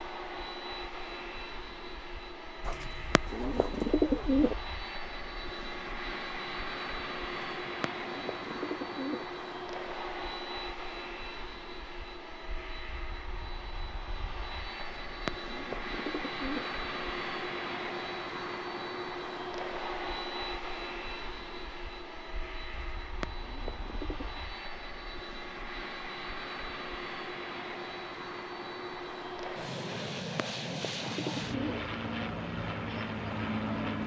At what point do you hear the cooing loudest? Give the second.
4 s.